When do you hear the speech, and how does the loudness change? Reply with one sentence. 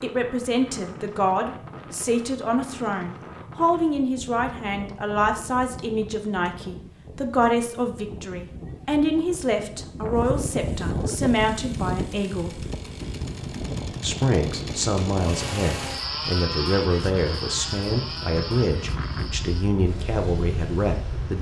The speech can be heard from 0.0 to 12.7 s, at a steady volume; and from 14.0 to 21.3 s, at a steady volume.